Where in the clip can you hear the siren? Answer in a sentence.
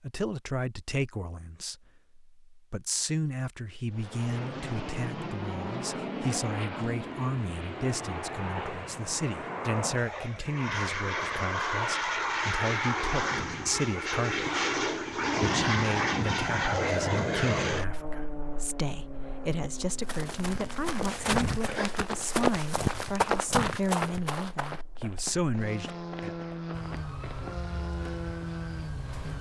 You can hear the siren from 26.7 to 29.3 s.